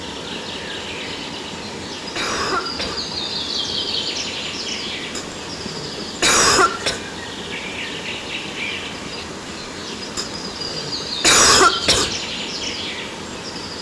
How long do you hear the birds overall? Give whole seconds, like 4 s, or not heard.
14 s.